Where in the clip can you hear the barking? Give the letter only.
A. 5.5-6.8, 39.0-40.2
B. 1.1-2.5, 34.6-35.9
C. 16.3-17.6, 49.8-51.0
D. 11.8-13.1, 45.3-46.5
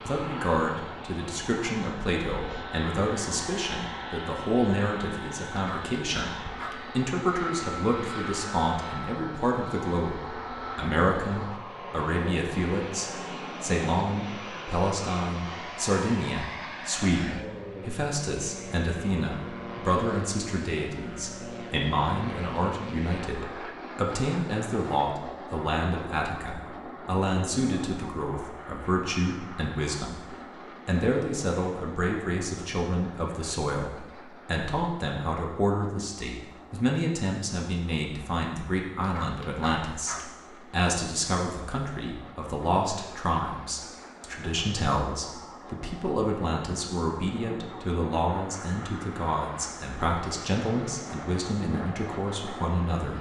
A.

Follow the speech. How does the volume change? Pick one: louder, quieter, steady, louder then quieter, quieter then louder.
steady.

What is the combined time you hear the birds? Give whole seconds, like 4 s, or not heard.
not heard.